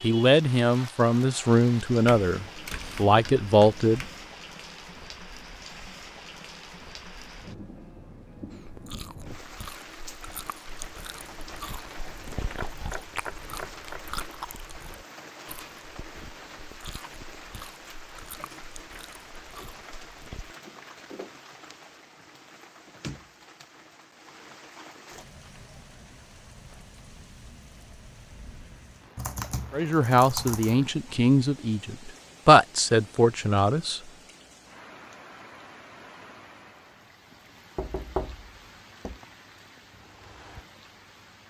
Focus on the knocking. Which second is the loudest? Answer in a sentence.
The loudest moment of the knocking is at 38 seconds.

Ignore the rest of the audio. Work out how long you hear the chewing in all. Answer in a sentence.
You can hear the chewing for 12 seconds altogether.